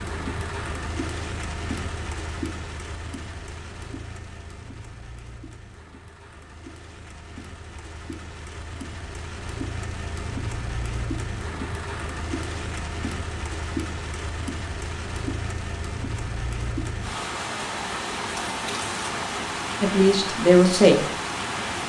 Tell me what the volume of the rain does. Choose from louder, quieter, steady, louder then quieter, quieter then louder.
quieter then louder.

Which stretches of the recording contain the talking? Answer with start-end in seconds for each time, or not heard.
19.8-21.1.